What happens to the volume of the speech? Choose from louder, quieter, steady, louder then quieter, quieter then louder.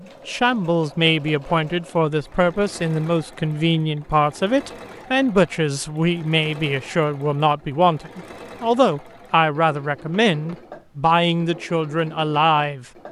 steady.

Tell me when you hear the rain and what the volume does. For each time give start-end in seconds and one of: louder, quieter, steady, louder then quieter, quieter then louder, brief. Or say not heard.
not heard.